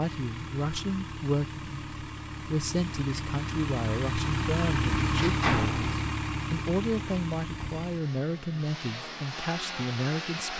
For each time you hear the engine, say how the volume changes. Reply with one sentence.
The engine can be heard from 0.0 to 10.5 s, getting louder then quieter.